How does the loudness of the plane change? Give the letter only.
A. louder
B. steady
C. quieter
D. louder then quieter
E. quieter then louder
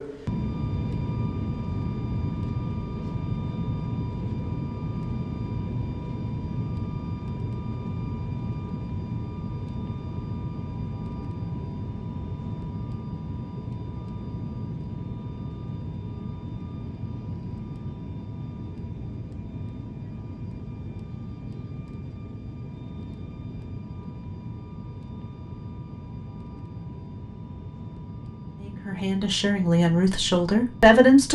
C.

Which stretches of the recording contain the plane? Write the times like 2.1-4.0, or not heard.
0.0-31.3.